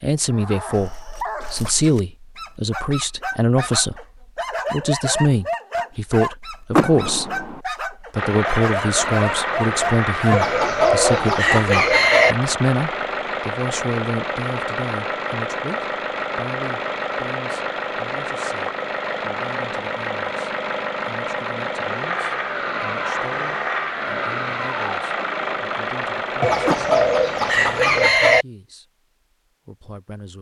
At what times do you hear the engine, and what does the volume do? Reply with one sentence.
The engine can be heard from 8.2 to 28.1 s, at a steady volume.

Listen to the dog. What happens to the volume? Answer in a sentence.
The volume of the dog goes up.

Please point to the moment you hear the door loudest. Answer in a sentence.
The loudest moment of the door is at 7 seconds.